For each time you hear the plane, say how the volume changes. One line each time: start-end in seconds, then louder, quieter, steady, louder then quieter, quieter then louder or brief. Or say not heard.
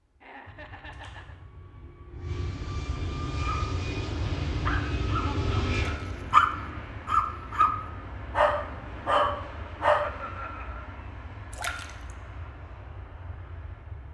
0.0-14.0 louder then quieter.